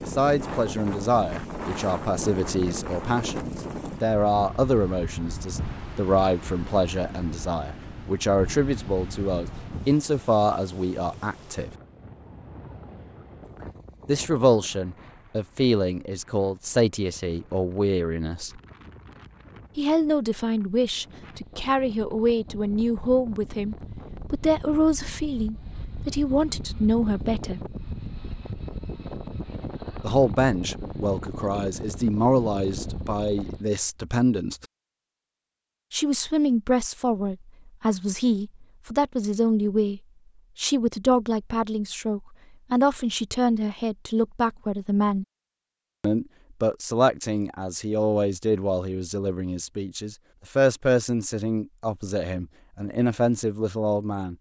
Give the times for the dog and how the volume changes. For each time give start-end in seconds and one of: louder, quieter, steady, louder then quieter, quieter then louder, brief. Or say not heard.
not heard.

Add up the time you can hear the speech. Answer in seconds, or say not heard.
46 s.